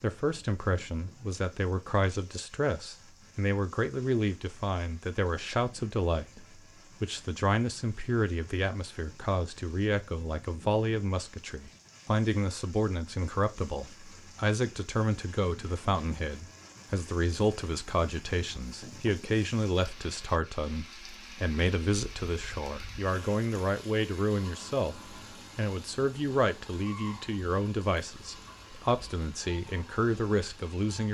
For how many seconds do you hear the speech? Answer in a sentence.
You can hear the speech for 31 seconds altogether.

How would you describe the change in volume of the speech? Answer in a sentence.
The loudness of the speech stays about the same.